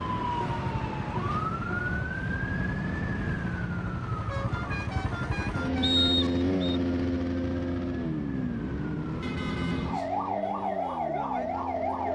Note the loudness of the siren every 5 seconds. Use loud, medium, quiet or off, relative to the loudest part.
loud, medium, loud.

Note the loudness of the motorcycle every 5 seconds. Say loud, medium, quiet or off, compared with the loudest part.
medium, loud, medium.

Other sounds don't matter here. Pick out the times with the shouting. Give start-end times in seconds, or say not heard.
not heard.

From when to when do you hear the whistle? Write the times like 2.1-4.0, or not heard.
5.8-6.8.